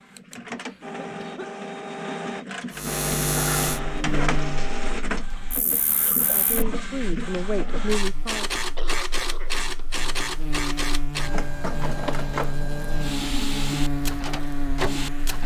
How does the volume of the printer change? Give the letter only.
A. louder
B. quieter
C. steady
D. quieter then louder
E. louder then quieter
C.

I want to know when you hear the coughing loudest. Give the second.
9 s.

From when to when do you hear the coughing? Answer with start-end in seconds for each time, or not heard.
0.6-1.5, 8.8-9.9.